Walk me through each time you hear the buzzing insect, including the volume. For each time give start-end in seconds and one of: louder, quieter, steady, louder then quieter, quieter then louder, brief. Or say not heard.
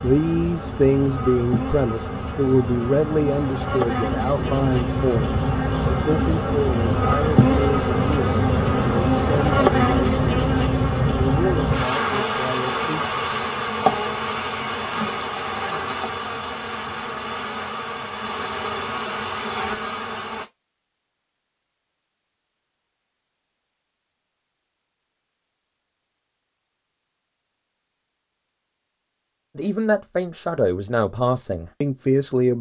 0.0-20.4 louder then quieter.